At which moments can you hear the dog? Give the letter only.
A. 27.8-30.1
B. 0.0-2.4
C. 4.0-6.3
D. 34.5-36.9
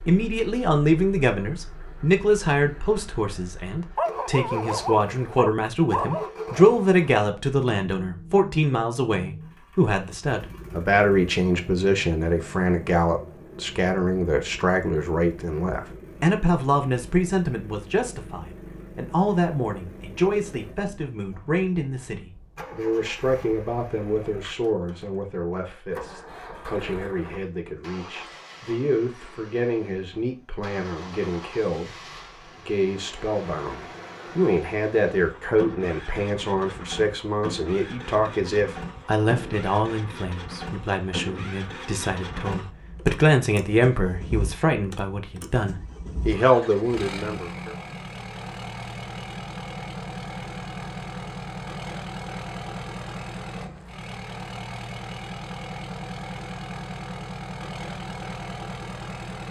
C.